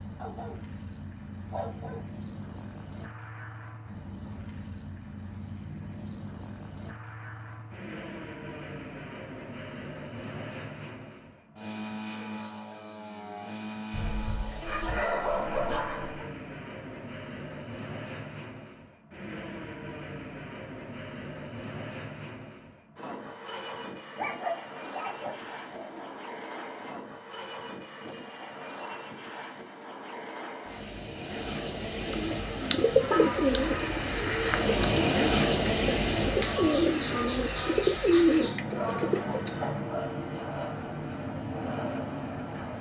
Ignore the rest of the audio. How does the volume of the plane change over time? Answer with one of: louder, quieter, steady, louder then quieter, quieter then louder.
louder.